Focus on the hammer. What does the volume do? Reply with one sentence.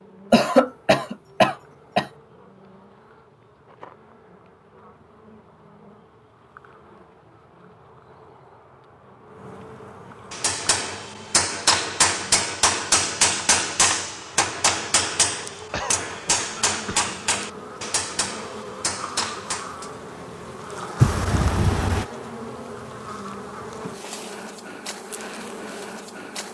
The loudness of the hammer goes down.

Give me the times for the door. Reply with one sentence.
You can hear the door from 21.0 to 22.1 s.